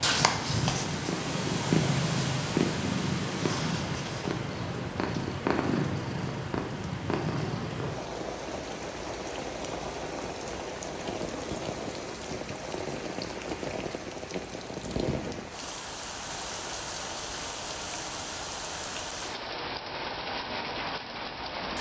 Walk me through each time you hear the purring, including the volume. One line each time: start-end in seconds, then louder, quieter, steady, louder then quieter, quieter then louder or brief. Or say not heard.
0.0-8.1 quieter.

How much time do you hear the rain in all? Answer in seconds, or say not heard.
22 s.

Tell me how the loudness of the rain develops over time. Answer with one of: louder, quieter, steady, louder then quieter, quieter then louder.
steady.